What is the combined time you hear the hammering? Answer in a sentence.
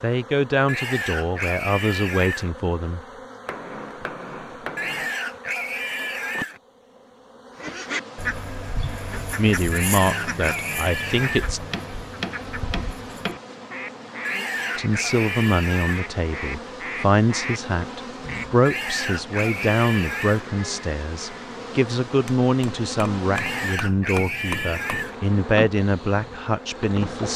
You can hear the hammering for 6 seconds altogether.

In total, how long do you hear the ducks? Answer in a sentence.
You can hear the ducks for 11 seconds altogether.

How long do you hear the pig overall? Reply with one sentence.
The pig can be heard for 11 seconds in total.